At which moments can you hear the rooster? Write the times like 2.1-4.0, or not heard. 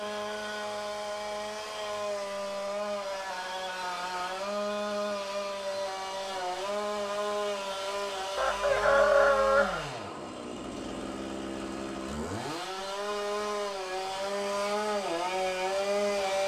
8.3-9.8.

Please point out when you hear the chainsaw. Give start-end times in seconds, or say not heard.
0.0-16.4.